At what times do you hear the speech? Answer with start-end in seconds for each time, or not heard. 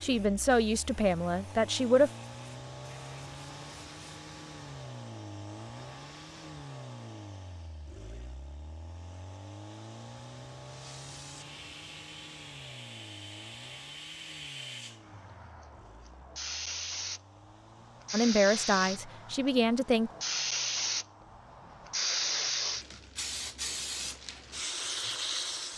0.0-2.1, 18.1-20.1.